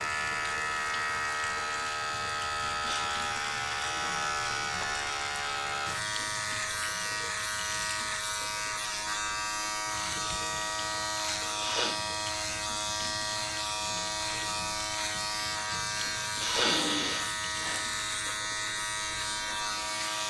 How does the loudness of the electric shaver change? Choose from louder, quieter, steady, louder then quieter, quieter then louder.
steady.